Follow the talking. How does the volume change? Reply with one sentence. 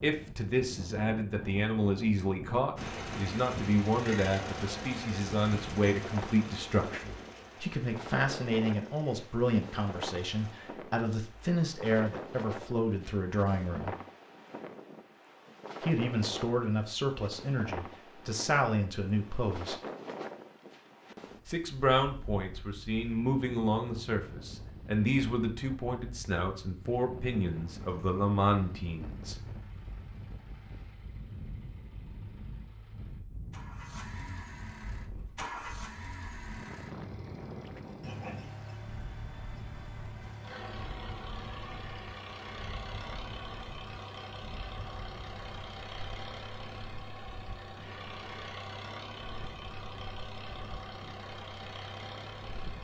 The loudness of the talking stays about the same.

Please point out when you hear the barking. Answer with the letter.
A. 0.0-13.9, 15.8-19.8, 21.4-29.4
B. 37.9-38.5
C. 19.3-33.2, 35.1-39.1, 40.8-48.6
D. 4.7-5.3
B.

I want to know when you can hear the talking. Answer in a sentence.
You can hear the talking from 0.0 to 13.9 s, from 15.8 to 19.8 s and from 21.4 to 29.4 s.